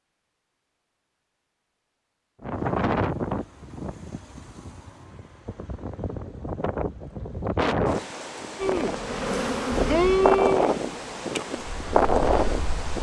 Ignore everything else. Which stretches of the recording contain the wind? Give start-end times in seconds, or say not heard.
2.4-12.9.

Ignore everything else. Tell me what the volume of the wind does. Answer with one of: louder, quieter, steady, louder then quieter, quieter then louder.
quieter then louder.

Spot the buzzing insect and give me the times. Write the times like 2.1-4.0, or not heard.
8.6-12.9.